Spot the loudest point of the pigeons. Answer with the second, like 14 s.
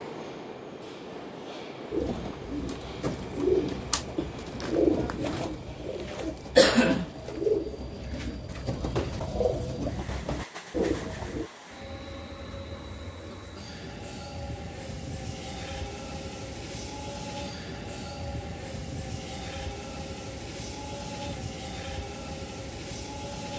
7 s.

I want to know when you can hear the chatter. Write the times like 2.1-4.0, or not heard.
not heard.